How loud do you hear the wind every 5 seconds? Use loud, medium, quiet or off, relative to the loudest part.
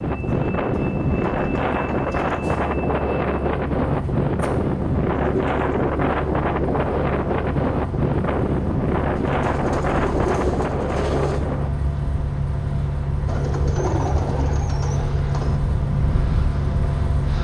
loud, loud, medium, medium.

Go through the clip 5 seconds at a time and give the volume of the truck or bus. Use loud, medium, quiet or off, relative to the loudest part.
medium, medium, loud, loud.